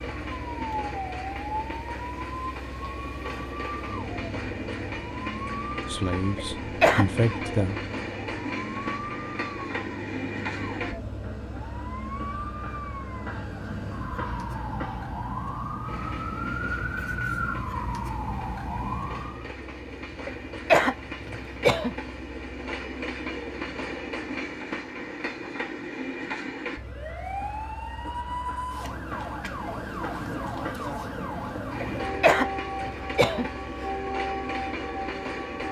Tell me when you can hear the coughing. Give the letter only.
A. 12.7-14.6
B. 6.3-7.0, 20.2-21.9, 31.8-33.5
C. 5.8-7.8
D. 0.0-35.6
B.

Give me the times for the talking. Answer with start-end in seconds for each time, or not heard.
5.8-7.8.